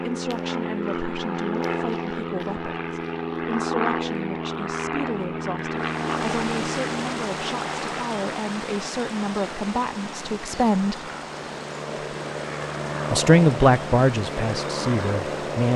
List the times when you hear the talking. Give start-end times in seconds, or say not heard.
0.0-11.0, 13.1-15.7.